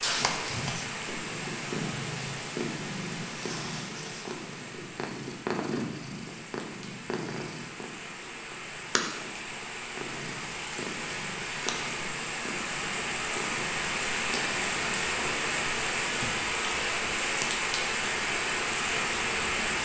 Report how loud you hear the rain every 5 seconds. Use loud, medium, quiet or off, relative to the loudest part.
medium, quiet, loud, loud.